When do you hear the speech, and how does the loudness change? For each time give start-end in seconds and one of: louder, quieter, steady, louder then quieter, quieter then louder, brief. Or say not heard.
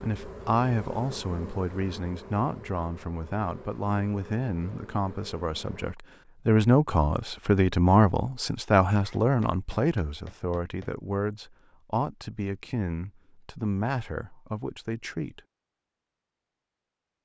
0.0-15.4 louder then quieter.